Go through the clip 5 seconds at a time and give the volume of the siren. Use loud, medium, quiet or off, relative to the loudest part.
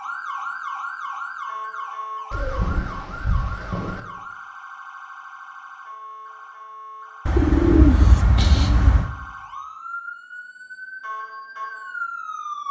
loud, medium, loud.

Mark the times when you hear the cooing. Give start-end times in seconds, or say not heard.
2.3-4.0, 7.2-9.1.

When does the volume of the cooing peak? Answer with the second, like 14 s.
8 s.